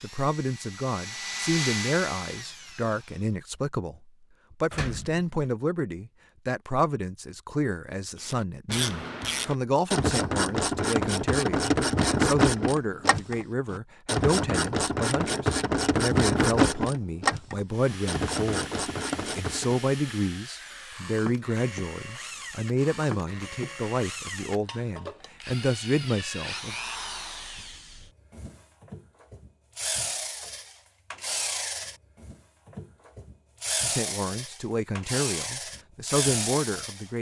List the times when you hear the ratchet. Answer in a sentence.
The ratchet can be heard from 8.2 to 19.9 s.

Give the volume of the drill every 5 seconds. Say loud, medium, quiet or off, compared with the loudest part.
loud, off, off, medium, medium, medium, loud, loud.